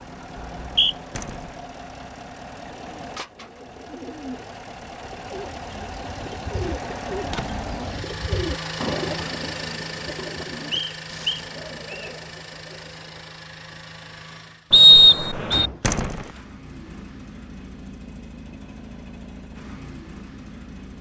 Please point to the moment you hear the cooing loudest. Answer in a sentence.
The loudest moment of the cooing is at 9 seconds.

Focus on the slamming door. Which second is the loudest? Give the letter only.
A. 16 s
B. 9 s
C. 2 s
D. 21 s
A.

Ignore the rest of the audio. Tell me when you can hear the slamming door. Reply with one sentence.
The slamming door can be heard from 1.1 to 1.6 s, from 7.2 to 7.7 s and from 15.8 to 16.4 s.